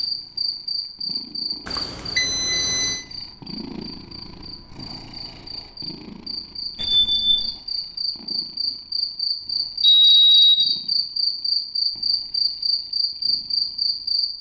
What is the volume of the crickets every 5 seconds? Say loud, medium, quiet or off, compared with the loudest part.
medium, medium, loud.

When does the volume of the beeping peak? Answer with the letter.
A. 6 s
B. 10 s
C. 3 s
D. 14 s
B.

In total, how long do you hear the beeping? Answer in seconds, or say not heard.
3 s.